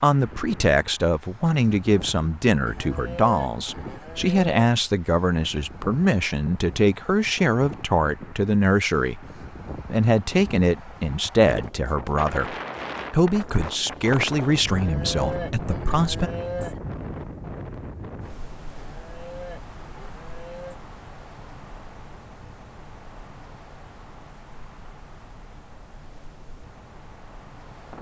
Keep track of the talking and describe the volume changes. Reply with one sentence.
The volume of the talking stays about the same.